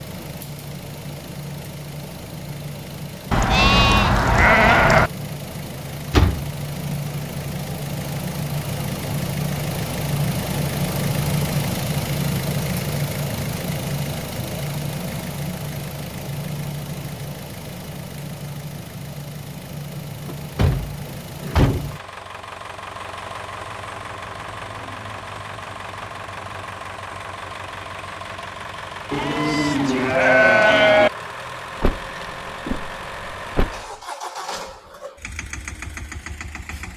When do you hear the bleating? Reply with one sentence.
You can hear the bleating from 3.3 to 5.1 s and from 29.1 to 31.1 s.